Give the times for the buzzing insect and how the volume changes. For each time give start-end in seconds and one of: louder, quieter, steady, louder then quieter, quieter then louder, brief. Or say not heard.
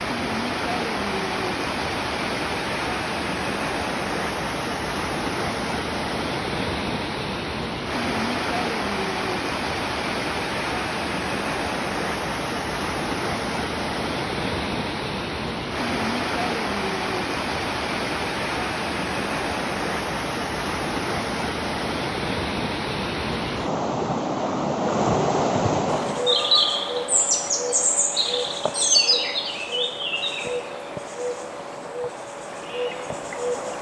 25.9-33.7 quieter.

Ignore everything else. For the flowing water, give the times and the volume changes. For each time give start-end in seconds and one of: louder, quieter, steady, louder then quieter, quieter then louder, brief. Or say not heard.
0.0-26.3 steady.